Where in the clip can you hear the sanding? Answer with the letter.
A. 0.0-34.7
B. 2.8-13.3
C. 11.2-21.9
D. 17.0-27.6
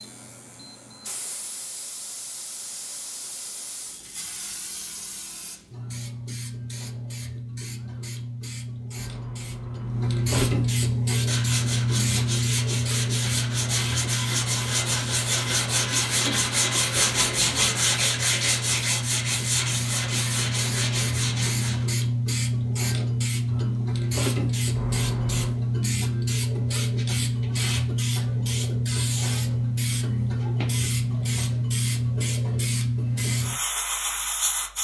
C.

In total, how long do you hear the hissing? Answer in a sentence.
You can hear the hissing for 35 seconds altogether.